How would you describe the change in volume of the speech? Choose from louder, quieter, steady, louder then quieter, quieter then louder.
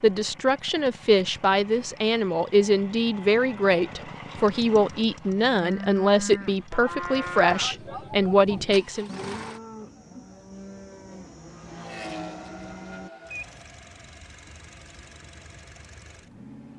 steady.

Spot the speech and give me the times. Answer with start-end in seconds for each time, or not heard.
0.0-9.1.